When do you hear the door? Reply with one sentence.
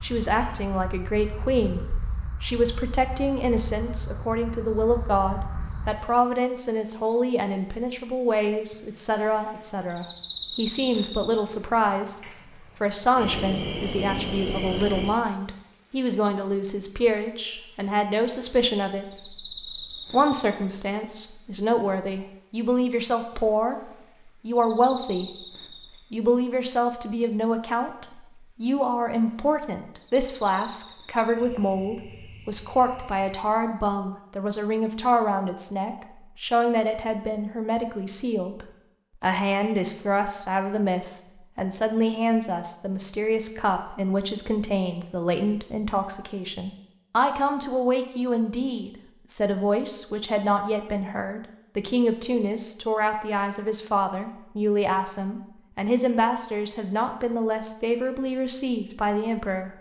The door can't be heard in this clip.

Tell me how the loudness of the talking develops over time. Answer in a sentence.
The loudness of the talking stays about the same.